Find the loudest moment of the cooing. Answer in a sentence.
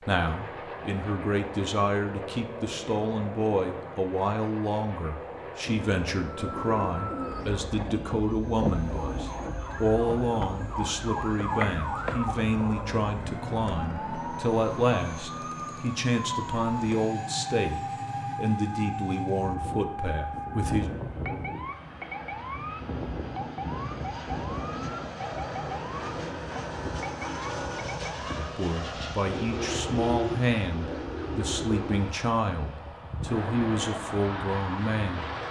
The volume of the cooing peaks at 30 seconds.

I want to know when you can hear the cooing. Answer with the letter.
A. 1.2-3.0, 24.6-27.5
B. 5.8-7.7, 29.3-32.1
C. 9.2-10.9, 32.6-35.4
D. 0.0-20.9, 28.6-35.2
B.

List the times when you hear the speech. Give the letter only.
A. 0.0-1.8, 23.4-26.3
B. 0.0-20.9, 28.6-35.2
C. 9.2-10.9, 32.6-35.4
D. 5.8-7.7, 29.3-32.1
B.